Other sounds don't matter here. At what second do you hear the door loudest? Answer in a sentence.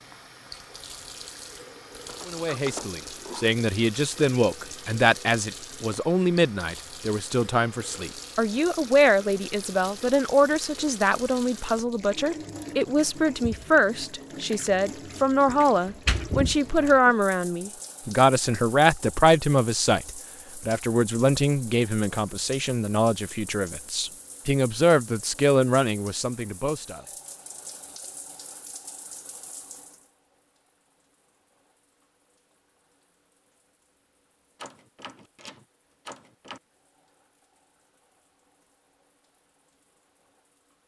The loudest moment of the door is at 16 seconds.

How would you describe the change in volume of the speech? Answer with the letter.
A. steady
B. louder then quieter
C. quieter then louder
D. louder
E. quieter
A.